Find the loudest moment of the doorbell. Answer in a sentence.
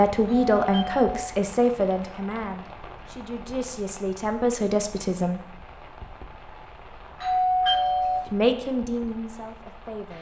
The volume of the doorbell peaks at 8 seconds.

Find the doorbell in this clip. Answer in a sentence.
The doorbell can be heard from 0.2 to 1.4 s and from 7.2 to 8.3 s.